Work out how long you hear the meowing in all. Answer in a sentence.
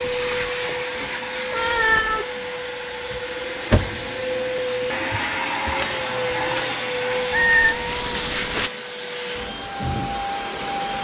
The meowing can be heard for 2 seconds in total.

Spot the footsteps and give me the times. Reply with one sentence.
The footsteps can't be heard in this clip.